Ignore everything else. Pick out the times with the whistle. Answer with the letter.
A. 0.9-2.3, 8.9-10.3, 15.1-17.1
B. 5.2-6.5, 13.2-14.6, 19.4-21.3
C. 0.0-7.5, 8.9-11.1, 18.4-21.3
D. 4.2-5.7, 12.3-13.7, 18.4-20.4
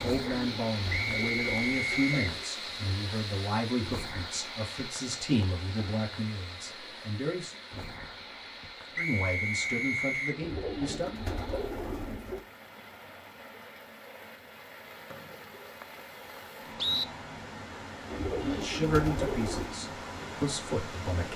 A.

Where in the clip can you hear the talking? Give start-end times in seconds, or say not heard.
0.0-7.5, 8.9-11.1, 18.4-21.3.